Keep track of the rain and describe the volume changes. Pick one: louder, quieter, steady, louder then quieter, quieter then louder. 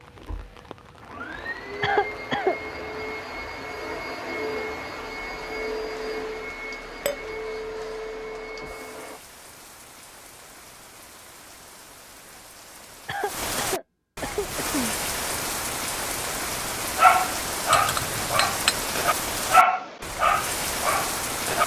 louder.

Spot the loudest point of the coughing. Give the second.
2 s.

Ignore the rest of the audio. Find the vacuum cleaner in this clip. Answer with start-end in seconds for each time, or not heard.
0.0-9.2.